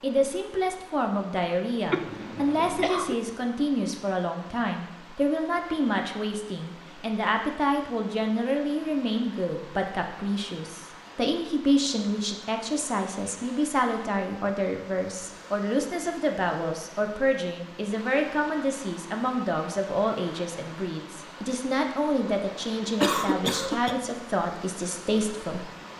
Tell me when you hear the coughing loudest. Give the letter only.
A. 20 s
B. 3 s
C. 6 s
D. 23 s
D.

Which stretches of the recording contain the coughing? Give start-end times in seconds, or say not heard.
1.9-3.1, 23.0-23.9.